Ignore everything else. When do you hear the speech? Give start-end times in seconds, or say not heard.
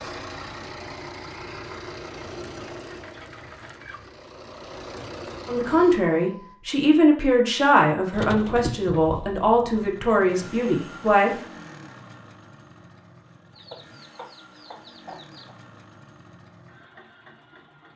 5.5-11.4.